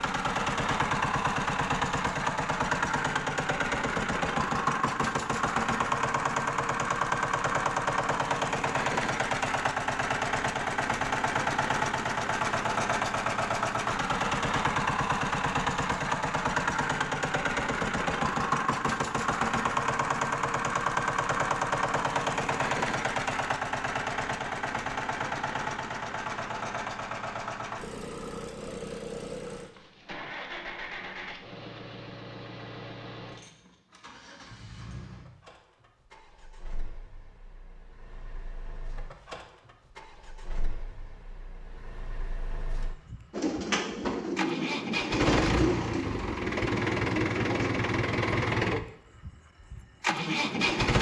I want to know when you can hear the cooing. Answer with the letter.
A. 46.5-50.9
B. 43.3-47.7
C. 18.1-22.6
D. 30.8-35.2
B.